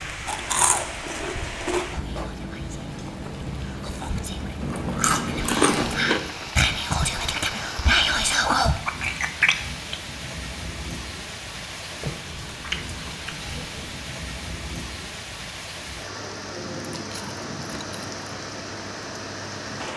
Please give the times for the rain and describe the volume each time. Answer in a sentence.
You can hear the rain from 0.0 to 19.9 s, at a steady volume.